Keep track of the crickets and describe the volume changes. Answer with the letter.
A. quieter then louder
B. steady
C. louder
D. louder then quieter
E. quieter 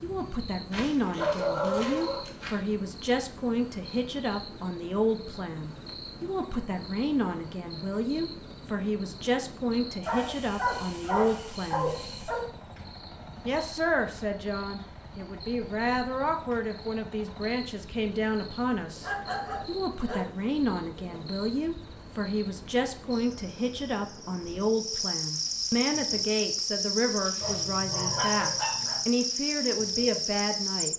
C.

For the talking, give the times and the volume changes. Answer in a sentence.
The talking can be heard from 0.0 to 11.9 s, at a steady volume; and from 13.4 to 30.9 s, at a steady volume.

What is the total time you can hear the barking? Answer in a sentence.
The barking can be heard for 7 seconds in total.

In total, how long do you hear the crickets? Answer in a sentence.
You can hear the crickets for 31 seconds altogether.